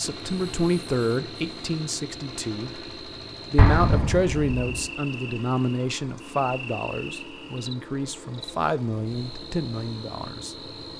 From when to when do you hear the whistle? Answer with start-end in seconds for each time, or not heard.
not heard.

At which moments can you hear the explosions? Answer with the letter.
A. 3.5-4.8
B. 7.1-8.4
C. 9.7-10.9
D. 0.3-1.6
A.